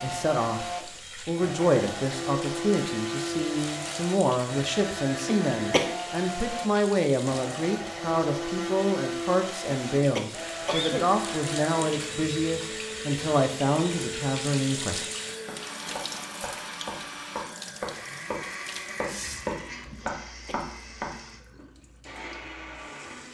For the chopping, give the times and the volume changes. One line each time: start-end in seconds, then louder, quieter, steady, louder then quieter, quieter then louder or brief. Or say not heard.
15.0-21.1 louder.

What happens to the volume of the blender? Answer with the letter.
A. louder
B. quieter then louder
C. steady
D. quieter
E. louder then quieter
D.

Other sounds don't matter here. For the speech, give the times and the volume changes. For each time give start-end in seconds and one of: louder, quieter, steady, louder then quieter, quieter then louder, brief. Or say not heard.
0.0-15.1 steady.